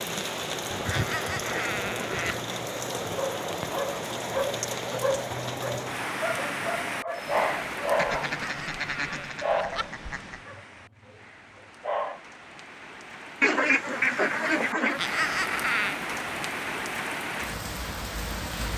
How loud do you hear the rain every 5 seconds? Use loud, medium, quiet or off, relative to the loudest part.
loud, loud, medium, loud.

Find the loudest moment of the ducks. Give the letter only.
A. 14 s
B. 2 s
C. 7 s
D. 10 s
A.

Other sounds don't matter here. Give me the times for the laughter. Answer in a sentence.
You can hear the laughter from 0.9 to 2.4 s, from 8.2 to 9.8 s and from 14.9 to 15.9 s.